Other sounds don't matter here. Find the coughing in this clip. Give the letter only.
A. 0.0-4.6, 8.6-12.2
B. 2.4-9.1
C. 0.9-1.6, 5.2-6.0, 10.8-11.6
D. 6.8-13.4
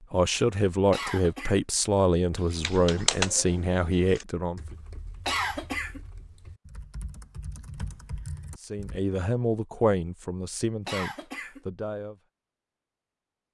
C.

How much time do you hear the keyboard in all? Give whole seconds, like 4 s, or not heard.
7 s.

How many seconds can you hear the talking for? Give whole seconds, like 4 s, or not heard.
8 s.